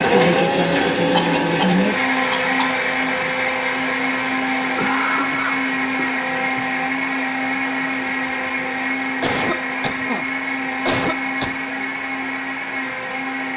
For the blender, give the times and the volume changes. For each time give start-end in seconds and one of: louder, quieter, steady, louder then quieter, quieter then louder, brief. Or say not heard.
0.0-13.5 quieter.